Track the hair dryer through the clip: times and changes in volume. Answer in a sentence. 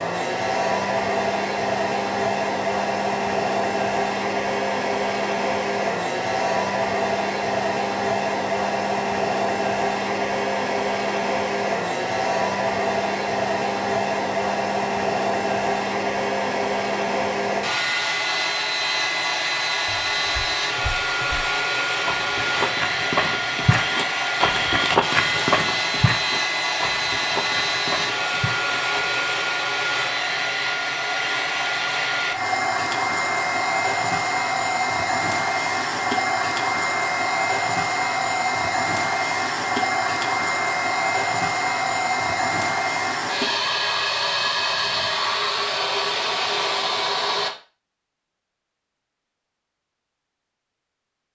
The hair dryer can be heard from 0.0 to 47.5 s, at a steady volume.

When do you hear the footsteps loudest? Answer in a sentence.
The volume of the footsteps peaks at 25 seconds.